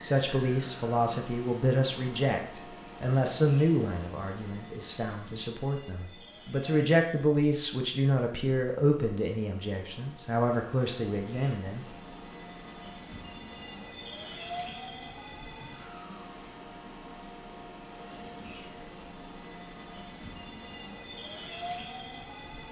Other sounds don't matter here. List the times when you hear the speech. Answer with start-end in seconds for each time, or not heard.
0.0-11.8.